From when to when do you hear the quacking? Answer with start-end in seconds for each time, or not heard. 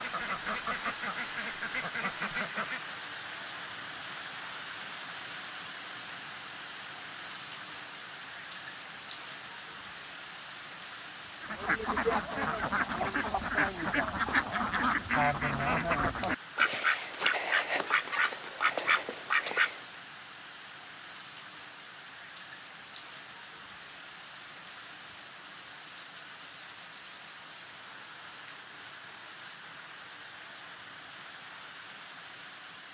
0.0-3.0, 11.4-19.9.